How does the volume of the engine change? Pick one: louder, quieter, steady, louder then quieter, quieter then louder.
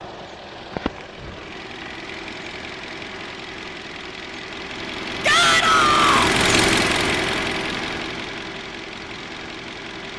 louder then quieter.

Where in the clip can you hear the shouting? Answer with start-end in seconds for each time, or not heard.
5.2-6.3.